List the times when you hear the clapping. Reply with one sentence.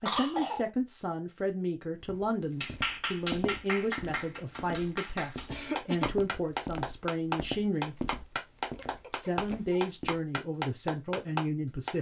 You can hear the clapping from 2.6 to 11.9 s.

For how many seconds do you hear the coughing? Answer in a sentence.
You can hear the coughing for 2 seconds altogether.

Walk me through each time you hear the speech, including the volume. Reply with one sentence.
You can hear the speech from 0.0 to 8.1 s, at a steady volume; and briefly from 9.1 to 11.9 s.